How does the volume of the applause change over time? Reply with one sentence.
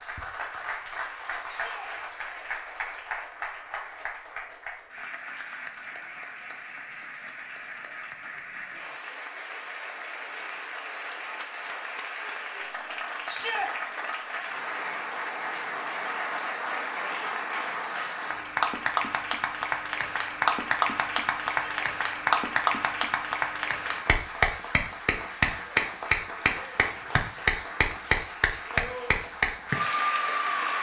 The volume of the applause goes up.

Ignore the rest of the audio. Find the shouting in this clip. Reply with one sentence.
You can hear the shouting from 1.4 to 1.9 s, from 13.2 to 13.7 s and from 21.4 to 21.9 s.